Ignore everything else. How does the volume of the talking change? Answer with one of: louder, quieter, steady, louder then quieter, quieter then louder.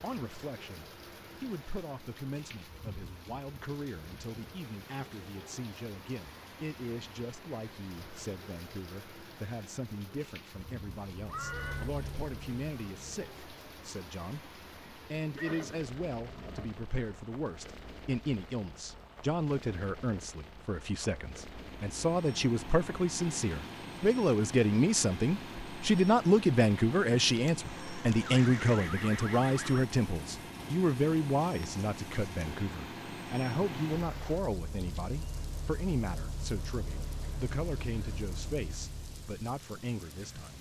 louder then quieter.